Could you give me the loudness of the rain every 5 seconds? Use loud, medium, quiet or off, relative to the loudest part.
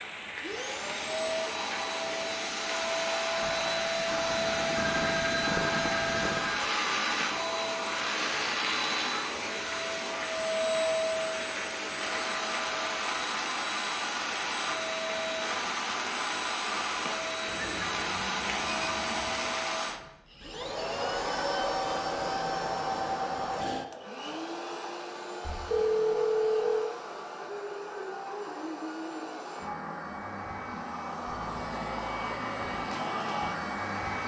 loud, loud, loud, loud, off, off, off.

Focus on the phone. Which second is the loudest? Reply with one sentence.
The loudest moment of the phone is at 26 seconds.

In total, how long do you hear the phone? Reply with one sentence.
You can hear the phone for 5 seconds altogether.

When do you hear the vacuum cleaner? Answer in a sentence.
The vacuum cleaner can be heard from 0.0 to 34.2 s.